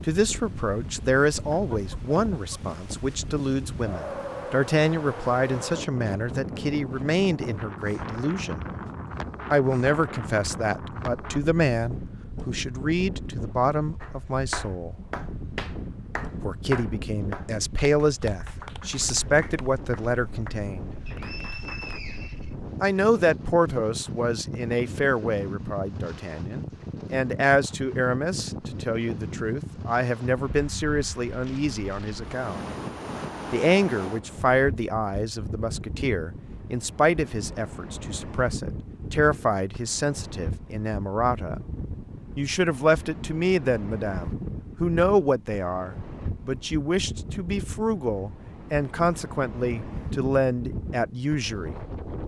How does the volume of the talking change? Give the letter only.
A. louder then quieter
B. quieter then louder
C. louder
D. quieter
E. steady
E.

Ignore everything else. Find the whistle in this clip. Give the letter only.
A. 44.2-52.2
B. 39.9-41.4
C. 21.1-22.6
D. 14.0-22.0
C.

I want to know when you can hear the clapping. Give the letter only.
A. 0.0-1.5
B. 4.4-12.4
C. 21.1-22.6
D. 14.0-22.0
D.